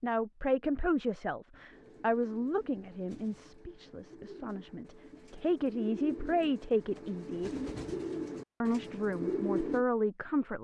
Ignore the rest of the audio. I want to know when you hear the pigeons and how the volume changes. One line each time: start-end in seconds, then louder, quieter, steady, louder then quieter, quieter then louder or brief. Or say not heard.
1.7-9.8 louder.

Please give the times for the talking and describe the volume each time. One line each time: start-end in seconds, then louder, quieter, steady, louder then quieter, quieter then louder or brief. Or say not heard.
0.0-7.5 quieter then louder
8.6-10.5 brief.